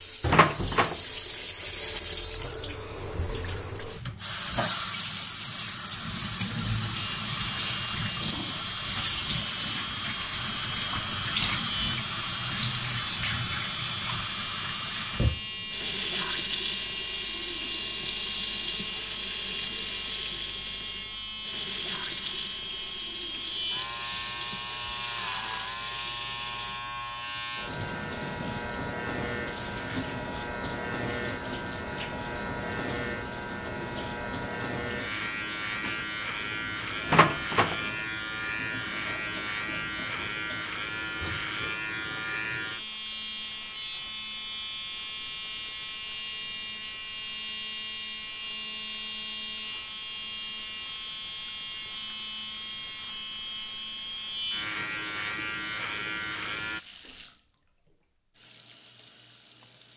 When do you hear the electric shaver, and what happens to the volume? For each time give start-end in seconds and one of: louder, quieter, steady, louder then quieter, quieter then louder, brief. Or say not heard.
6.9-56.8 steady.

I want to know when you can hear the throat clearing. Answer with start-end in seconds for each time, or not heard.
not heard.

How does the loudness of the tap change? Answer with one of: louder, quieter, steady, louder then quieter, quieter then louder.
quieter.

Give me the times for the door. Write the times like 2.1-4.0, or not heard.
0.2-1.0, 37.0-37.8.